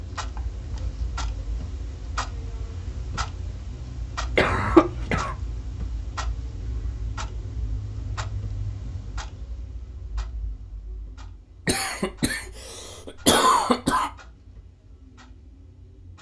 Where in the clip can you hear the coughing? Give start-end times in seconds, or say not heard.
4.3-5.3, 11.7-14.1.